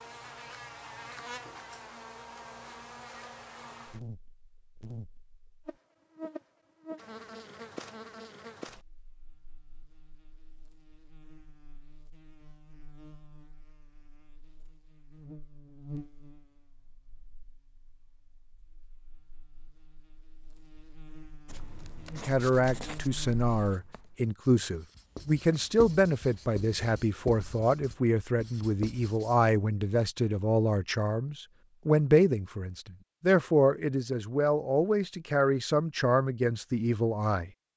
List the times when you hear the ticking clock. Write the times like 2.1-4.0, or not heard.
not heard.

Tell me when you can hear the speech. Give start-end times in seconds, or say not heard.
22.1-37.5.